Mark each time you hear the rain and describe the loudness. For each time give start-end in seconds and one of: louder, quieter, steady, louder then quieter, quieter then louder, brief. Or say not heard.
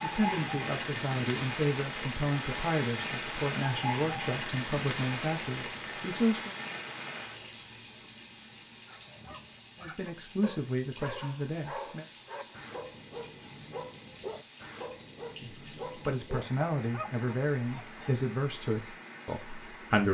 0.0-20.1 quieter.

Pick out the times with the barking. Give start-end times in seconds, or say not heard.
8.8-18.1.